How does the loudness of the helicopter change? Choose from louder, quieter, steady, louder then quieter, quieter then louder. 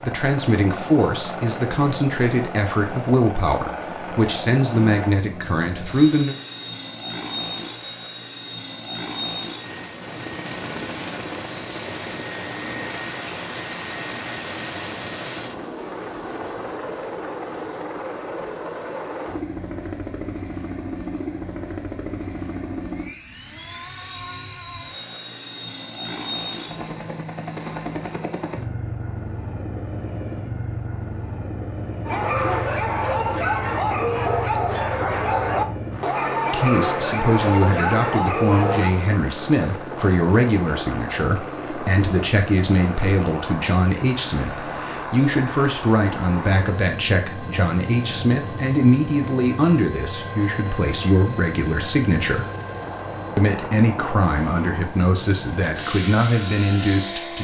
steady.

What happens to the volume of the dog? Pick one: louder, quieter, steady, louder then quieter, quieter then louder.
steady.